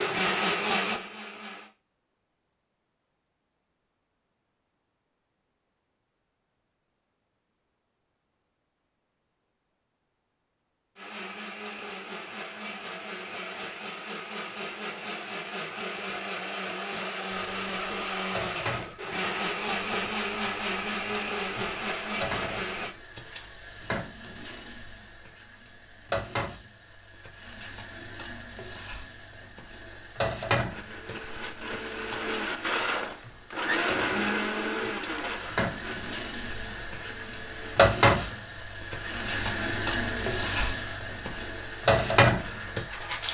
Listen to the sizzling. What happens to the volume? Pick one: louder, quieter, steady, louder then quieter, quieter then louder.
louder.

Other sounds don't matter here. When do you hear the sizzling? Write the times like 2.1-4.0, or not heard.
17.3-43.2.